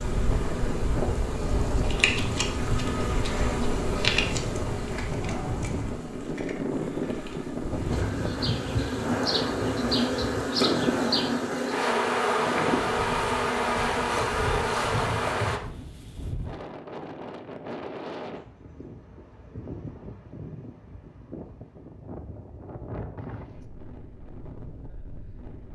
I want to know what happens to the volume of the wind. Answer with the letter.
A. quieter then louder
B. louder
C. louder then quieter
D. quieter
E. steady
D.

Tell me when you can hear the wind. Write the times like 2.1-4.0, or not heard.
0.0-25.7.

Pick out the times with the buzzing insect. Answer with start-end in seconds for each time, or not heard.
0.0-15.6.